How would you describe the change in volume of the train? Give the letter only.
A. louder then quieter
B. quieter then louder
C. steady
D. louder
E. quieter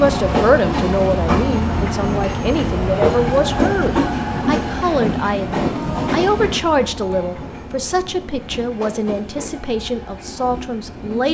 E.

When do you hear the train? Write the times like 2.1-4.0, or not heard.
0.0-11.3.